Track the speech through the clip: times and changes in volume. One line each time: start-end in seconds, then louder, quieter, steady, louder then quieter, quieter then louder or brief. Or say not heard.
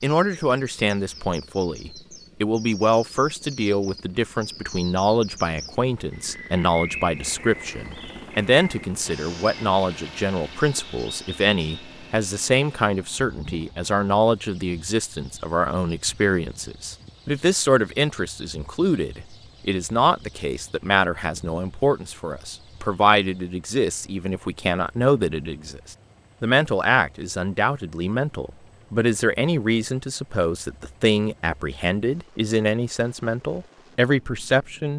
0.0-34.9 steady.